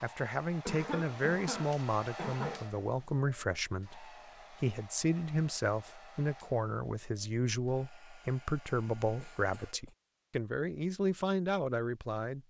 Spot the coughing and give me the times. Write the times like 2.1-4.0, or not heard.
0.7-2.7, 9.2-9.9.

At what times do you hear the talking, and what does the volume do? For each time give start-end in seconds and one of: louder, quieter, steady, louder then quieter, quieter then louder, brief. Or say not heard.
0.0-12.4 steady.